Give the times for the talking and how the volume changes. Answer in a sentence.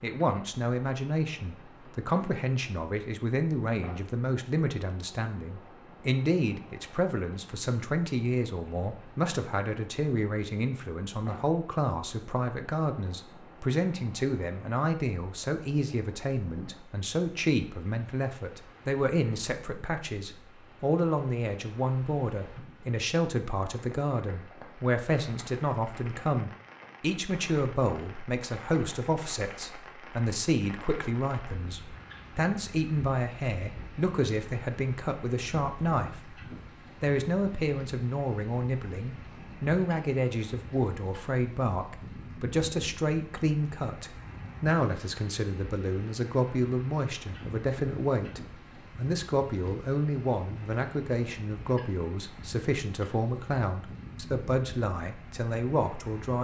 You can hear the talking from 0.0 to 36.4 s, at a steady volume; and from 37.0 to 56.4 s, at a steady volume.